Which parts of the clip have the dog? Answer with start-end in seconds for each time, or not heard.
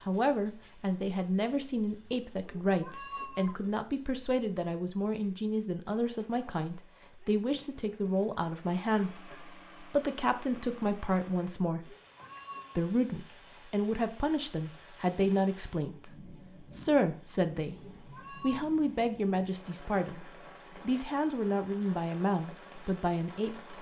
not heard.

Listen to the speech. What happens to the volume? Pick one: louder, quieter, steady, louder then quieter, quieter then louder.
steady.